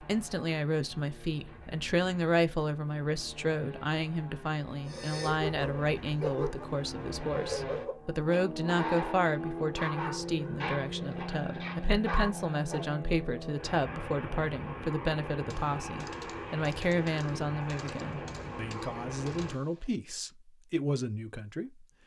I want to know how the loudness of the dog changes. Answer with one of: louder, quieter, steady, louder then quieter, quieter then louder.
steady.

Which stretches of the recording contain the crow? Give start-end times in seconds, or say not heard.
not heard.